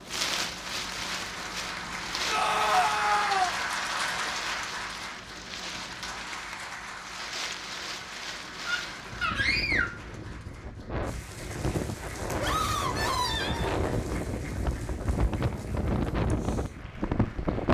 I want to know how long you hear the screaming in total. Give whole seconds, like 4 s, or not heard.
4 s.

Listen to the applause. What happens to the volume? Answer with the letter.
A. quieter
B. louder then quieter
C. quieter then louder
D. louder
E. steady
A.